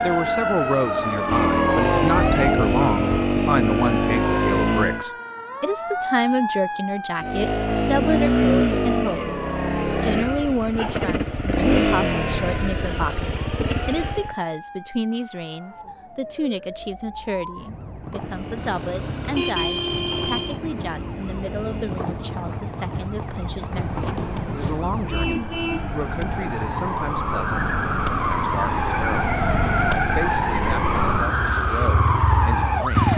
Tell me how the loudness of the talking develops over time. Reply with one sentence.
The loudness of the talking goes down.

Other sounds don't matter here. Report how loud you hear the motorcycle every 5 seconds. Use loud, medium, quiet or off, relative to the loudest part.
loud, loud, loud, quiet, quiet, medium, medium.